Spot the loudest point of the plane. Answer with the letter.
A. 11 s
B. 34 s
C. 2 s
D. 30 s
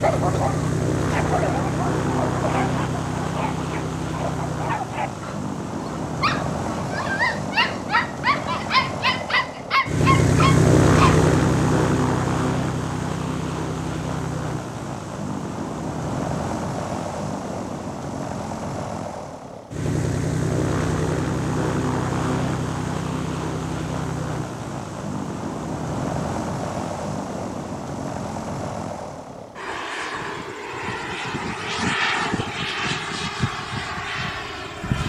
A.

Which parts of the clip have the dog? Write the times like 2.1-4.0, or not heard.
0.0-11.2.